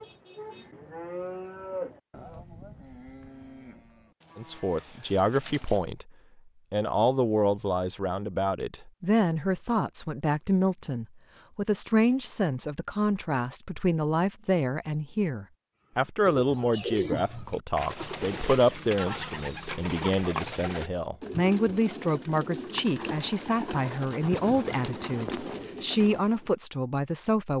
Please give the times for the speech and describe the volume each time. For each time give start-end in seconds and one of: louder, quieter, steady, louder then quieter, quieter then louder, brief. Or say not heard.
4.3-6.0 brief
6.7-27.5 steady.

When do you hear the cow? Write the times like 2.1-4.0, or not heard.
0.0-5.8.